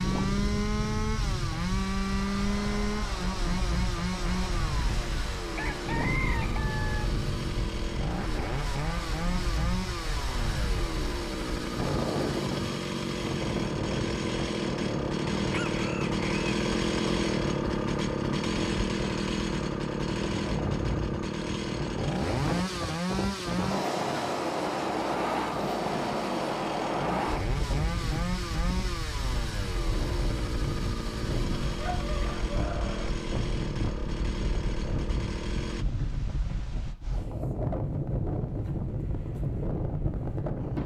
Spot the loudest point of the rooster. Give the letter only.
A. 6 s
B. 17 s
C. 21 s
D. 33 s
A.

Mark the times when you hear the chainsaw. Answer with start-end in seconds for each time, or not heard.
0.0-35.9.